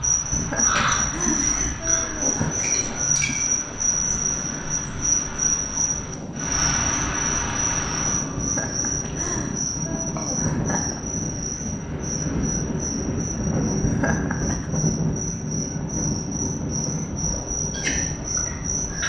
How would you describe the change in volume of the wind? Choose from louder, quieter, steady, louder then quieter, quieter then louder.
louder.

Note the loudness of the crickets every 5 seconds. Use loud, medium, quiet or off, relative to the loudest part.
loud, loud, medium, medium.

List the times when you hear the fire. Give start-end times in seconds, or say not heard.
not heard.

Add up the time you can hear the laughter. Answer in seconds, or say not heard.
6 s.